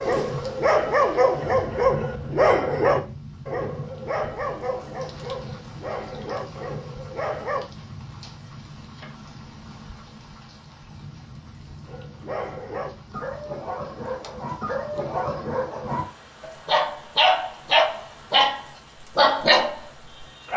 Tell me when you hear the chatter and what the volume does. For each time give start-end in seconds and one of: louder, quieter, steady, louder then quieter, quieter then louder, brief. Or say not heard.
not heard.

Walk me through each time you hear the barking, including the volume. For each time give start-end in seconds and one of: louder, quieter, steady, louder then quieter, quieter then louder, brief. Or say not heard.
0.0-7.7 quieter
11.8-20.5 louder.